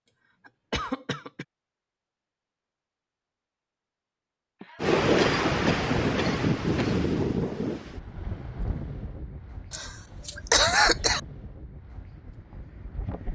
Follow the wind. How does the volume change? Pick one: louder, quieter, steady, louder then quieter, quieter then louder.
quieter.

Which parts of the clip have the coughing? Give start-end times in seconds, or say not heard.
0.5-1.4, 4.6-7.0, 9.7-11.2.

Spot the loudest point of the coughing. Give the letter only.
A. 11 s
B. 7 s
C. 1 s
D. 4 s
A.